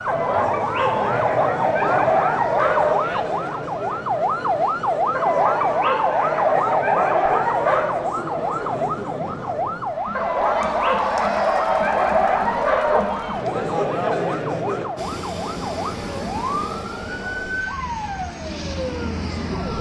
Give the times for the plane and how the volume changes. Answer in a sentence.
You can hear the plane from 14.9 to 19.7 s, getting quieter then louder.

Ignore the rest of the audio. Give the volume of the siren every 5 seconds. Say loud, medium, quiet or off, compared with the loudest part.
loud, loud, medium, medium.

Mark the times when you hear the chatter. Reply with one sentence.
You can hear the chatter from 0.0 to 14.9 s.